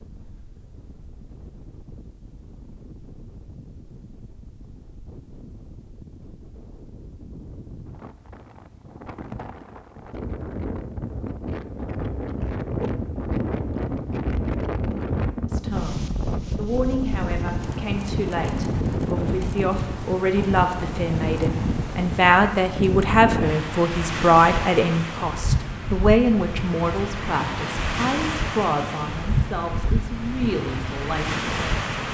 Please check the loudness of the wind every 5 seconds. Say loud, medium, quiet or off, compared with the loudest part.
quiet, quiet, loud, loud, loud, loud, loud.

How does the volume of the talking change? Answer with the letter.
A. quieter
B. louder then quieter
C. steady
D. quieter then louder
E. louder
B.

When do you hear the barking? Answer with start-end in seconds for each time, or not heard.
not heard.